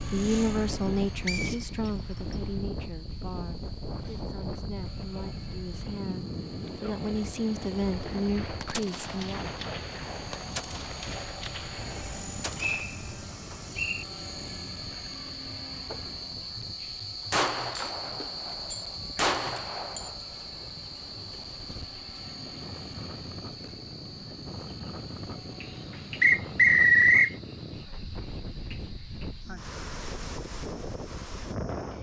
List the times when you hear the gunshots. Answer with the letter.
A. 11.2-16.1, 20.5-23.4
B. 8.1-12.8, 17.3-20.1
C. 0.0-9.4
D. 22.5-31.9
B.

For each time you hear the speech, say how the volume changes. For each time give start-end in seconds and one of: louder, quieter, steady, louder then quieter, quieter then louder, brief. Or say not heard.
0.0-9.4 quieter then louder.